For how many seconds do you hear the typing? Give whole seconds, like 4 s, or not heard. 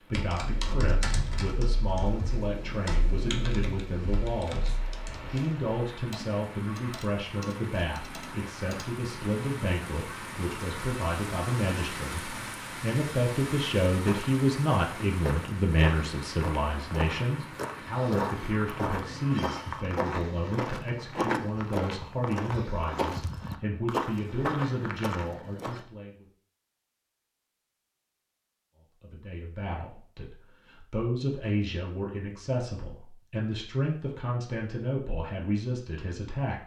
9 s.